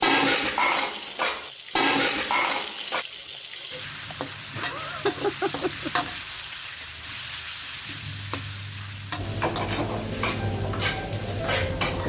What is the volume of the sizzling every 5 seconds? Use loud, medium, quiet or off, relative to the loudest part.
loud, loud, medium.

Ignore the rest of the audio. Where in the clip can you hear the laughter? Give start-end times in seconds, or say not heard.
4.1-5.9.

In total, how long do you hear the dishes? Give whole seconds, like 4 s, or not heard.
6 s.